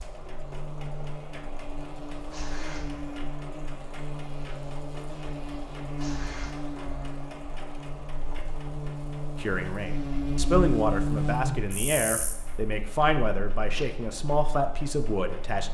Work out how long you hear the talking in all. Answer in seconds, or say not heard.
6 s.